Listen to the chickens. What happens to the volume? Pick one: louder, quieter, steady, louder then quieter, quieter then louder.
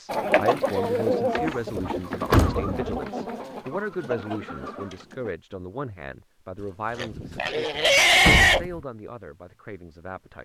quieter.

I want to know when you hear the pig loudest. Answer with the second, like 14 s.
8 s.